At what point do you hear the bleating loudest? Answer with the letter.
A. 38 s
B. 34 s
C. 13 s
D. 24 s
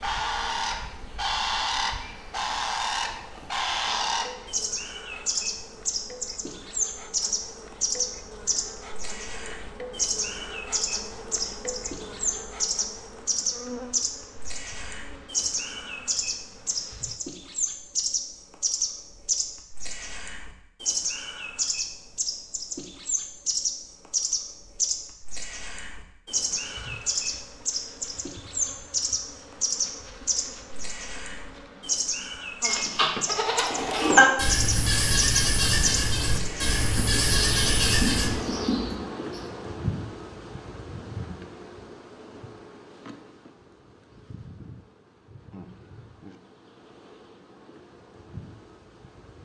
B.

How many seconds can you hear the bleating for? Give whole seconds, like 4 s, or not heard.
6 s.